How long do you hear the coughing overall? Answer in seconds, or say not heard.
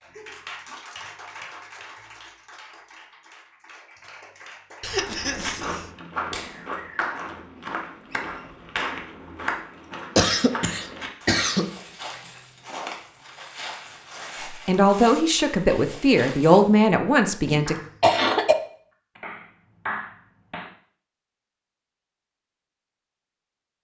4 s.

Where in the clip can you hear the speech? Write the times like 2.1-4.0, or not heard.
14.5-17.8.